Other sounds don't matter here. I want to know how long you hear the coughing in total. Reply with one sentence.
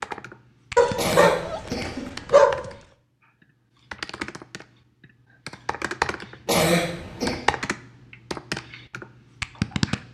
The coughing can be heard for 2 seconds in total.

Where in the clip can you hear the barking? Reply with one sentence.
You can hear the barking from 0.8 to 2.7 s.